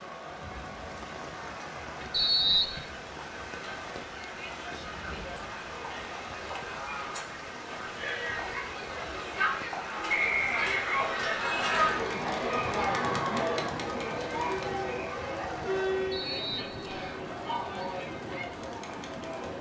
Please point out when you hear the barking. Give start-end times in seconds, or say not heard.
not heard.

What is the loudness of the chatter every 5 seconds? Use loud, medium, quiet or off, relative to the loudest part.
quiet, medium, loud, medium.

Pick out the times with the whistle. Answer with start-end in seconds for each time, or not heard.
2.1-2.8, 10.1-11.1, 16.1-17.2.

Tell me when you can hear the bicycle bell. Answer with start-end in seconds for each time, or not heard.
not heard.